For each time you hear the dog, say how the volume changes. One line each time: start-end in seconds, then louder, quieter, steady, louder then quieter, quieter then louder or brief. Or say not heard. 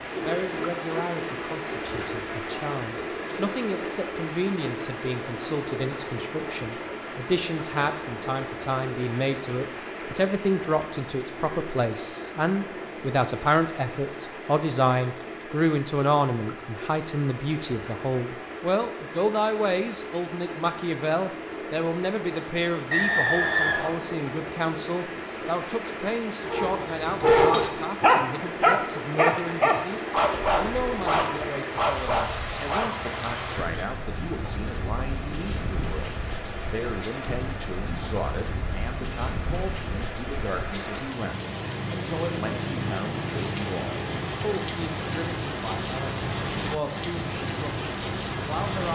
26.4-34.0 quieter.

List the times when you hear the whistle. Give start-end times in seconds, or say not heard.
22.9-23.9.